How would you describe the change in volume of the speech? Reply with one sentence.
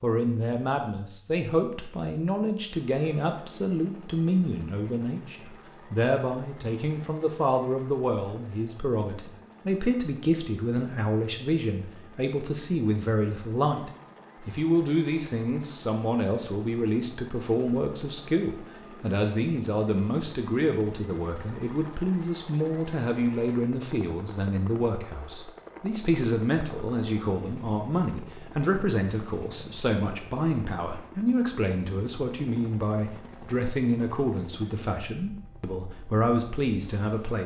The volume of the speech stays about the same.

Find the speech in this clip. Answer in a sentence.
The speech can be heard from 0.0 to 37.4 s.